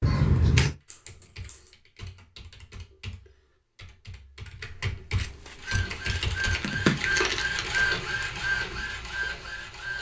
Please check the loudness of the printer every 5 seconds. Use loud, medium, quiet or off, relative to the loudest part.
off, loud.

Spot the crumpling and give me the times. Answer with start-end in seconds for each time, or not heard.
0.8-1.7, 6.0-8.1.